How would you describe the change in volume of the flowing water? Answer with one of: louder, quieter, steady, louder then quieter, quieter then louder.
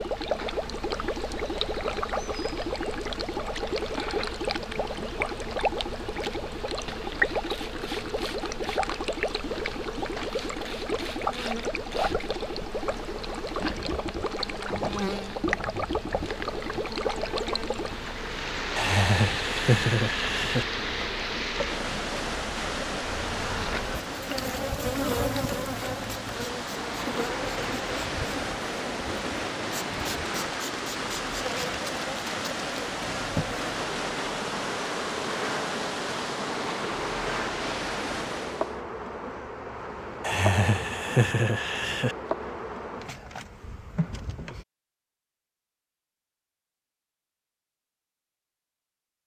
steady.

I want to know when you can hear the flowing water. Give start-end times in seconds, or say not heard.
0.0-38.8.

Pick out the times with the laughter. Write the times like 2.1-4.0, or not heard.
18.8-20.6, 40.2-42.1.